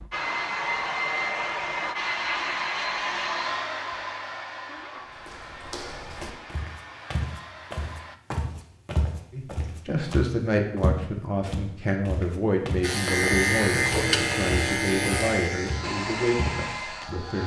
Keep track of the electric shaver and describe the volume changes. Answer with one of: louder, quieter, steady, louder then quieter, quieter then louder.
quieter.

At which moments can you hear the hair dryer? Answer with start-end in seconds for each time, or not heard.
0.0-8.2, 15.8-17.4.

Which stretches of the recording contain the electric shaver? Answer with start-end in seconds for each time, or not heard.
12.8-17.4.